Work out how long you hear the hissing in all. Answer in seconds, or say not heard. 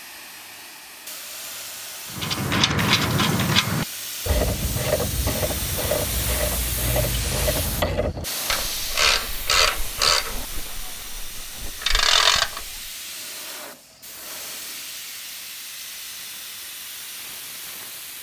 18 s.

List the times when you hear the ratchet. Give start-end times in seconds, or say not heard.
2.1-12.7.